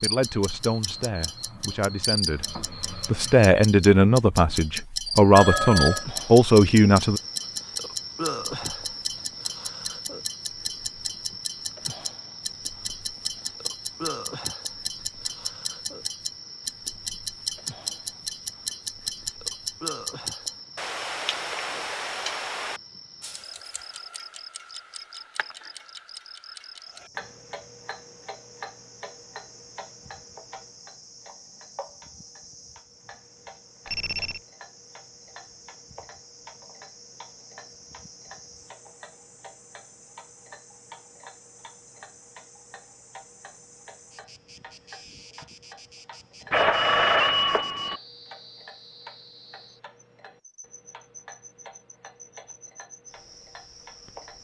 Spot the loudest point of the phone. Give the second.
47 s.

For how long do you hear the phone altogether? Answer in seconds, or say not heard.
3 s.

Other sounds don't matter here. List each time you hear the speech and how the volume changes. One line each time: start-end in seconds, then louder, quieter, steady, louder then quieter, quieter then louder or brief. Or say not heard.
0.0-7.2 louder.